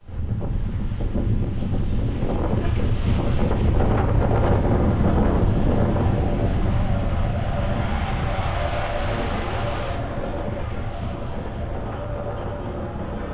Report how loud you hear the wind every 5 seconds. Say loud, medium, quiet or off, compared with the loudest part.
loud, loud, medium.